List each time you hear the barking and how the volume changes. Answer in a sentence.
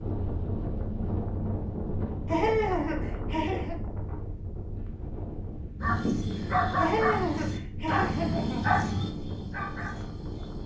You can hear the barking from 5.8 to 10.6 s, getting quieter.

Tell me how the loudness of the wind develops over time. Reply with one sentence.
The loudness of the wind goes down.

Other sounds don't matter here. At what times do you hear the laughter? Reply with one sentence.
You can hear the laughter from 2.2 to 3.8 s and from 6.8 to 8.7 s.